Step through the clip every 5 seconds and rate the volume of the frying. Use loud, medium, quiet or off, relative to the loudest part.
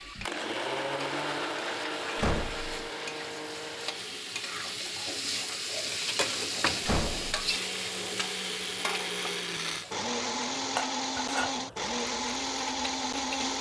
medium, loud, medium.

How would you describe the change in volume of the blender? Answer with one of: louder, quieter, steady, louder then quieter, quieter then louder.
quieter then louder.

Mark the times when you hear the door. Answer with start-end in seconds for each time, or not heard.
2.1-2.9, 6.8-7.5.